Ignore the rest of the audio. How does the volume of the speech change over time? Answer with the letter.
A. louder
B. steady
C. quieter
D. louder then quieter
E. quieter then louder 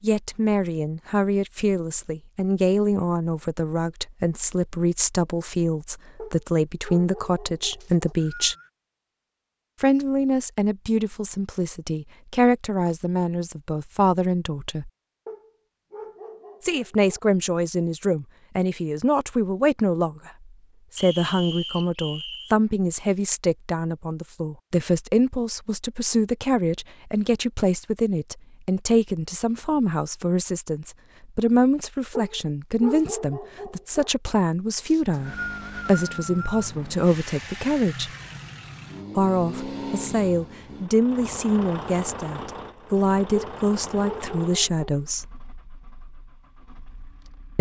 B.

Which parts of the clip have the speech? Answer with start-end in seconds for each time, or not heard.
0.0-8.6, 9.8-14.9, 16.6-38.1, 39.1-45.3.